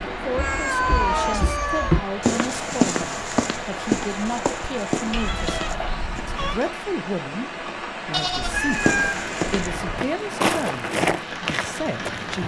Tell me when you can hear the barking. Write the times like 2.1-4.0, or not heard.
not heard.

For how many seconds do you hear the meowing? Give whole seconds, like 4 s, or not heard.
4 s.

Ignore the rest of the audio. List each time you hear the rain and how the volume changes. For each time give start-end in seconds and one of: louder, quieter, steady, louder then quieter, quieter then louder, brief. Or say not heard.
0.0-12.4 steady.